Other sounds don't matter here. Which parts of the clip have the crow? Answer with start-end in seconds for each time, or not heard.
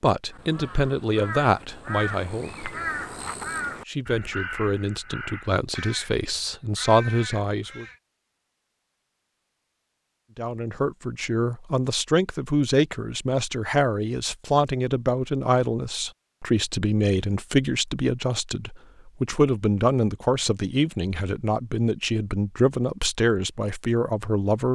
0.3-8.0.